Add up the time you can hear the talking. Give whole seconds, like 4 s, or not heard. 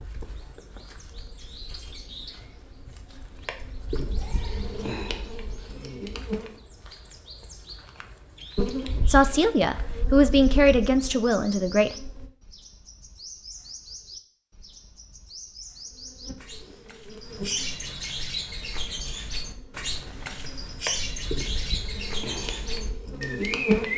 3 s.